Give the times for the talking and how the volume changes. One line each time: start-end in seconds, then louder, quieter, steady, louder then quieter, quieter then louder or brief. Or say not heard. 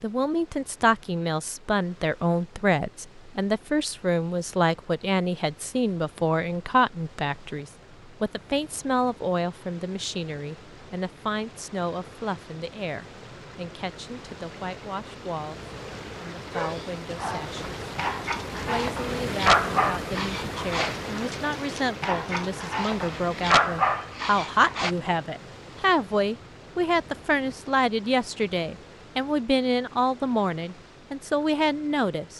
0.0-15.6 quieter
16.2-17.6 brief
18.6-32.3 louder.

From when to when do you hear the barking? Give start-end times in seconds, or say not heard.
16.2-24.9.